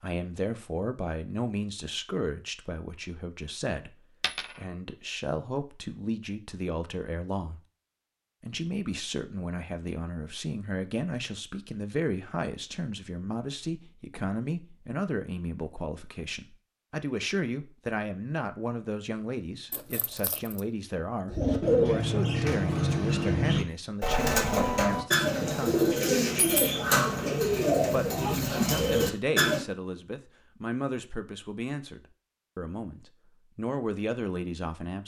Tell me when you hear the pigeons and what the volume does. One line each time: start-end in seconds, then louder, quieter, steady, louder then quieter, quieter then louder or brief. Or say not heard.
21.2-29.6 steady.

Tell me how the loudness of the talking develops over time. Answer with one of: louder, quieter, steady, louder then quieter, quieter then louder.
steady.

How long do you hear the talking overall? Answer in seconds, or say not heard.
32 s.